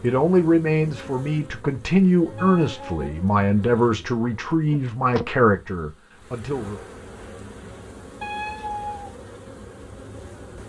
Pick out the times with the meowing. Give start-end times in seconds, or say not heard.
2.4-2.9, 8.2-9.2.